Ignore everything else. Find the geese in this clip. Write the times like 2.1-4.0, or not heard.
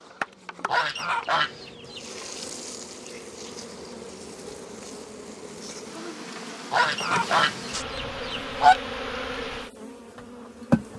0.7-2.0, 6.7-8.9.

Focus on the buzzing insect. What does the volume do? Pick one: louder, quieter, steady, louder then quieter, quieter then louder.
louder.